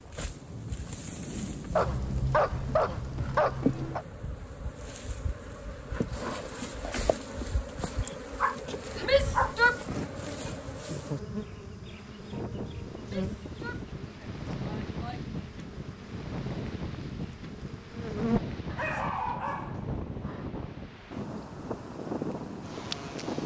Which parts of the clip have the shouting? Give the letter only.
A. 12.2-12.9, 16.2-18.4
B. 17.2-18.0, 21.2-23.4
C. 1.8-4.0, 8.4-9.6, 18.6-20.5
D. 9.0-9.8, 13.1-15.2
D.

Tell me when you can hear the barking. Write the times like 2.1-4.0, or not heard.
1.8-4.0, 8.4-9.6, 18.6-20.5.